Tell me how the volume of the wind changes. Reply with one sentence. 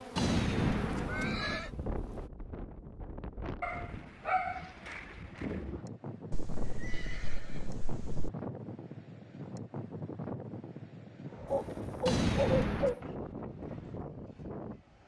The loudness of the wind stays about the same.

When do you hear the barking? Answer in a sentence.
You can hear the barking from 3.6 to 5.6 s and from 11.4 to 13.0 s.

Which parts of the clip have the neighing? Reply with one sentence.
You can hear the neighing from 0.1 to 1.7 s, from 6.3 to 8.3 s and from 12.1 to 12.9 s.